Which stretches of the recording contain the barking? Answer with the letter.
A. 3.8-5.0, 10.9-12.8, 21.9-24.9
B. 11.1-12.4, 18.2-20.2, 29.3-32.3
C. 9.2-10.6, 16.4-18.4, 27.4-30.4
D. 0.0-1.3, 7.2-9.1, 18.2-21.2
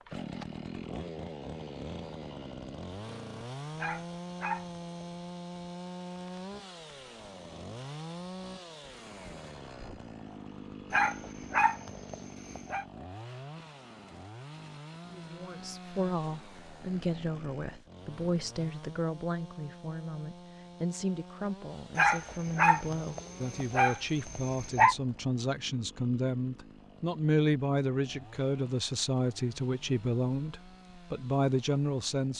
A.